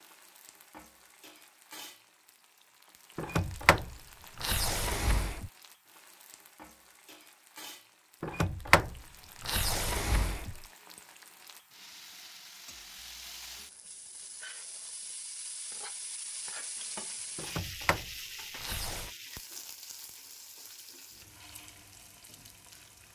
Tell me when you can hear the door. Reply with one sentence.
The door can be heard from 3.1 to 5.5 s, from 8.2 to 10.7 s and from 17.4 to 19.1 s.